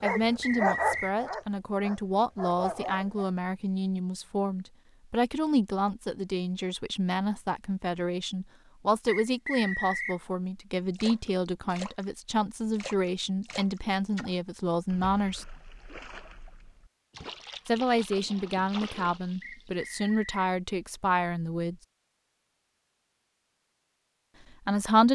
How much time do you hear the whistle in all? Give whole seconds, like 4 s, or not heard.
3 s.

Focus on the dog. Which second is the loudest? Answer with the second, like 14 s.
1 s.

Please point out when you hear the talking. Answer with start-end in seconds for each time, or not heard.
0.0-15.4, 17.6-21.8, 24.6-25.1.